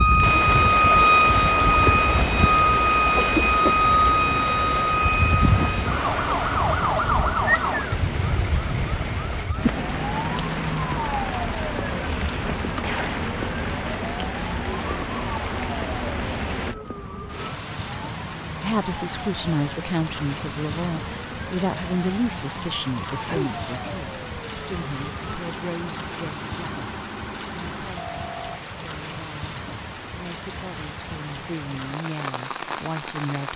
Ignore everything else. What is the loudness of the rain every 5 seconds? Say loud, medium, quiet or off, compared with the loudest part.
loud, loud, loud, medium, medium, medium, medium.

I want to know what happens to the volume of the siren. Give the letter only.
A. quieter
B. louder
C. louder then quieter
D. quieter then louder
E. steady
A.